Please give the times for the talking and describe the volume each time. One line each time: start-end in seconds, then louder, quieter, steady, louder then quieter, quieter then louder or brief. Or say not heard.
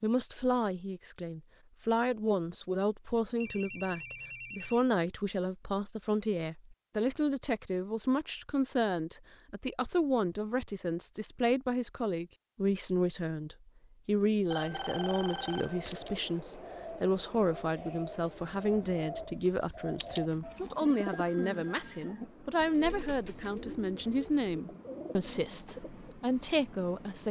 0.0-27.2 steady.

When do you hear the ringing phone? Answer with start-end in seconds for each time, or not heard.
3.4-4.8, 14.5-16.0, 20.1-22.0.